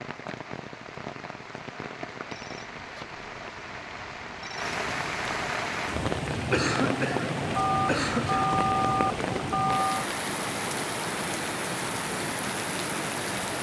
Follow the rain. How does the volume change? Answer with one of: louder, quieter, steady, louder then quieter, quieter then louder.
louder.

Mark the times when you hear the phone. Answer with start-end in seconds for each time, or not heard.
2.3-4.8, 7.5-10.1.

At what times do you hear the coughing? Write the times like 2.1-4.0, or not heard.
6.5-8.6.